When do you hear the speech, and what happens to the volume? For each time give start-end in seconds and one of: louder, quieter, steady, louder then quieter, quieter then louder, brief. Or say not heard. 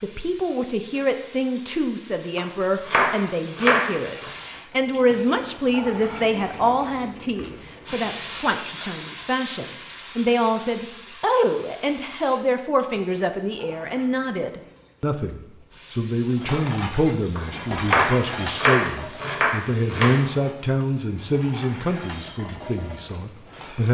0.0-23.8 steady.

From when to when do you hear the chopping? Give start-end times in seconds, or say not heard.
2.4-4.3, 17.4-20.1.